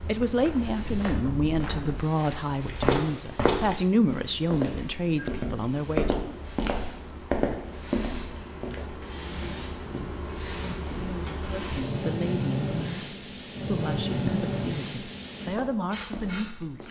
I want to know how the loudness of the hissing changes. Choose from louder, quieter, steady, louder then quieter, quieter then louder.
louder.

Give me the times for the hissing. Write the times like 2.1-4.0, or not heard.
0.0-16.8.